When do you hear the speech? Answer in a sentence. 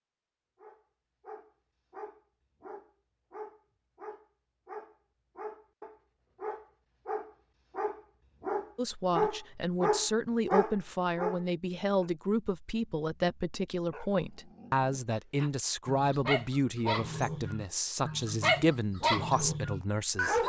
The speech can be heard from 8.8 to 20.4 s.